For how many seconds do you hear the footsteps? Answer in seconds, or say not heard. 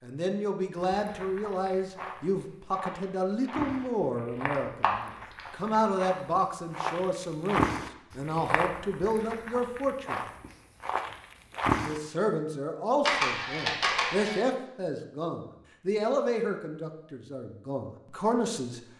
11 s.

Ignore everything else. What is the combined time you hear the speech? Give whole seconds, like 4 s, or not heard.
17 s.